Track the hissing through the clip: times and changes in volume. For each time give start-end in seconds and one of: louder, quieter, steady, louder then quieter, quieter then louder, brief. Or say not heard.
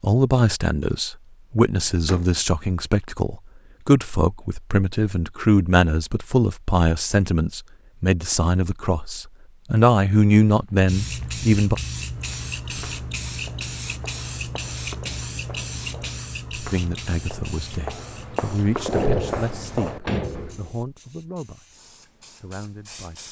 10.8-23.2 quieter.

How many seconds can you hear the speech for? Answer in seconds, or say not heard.
18 s.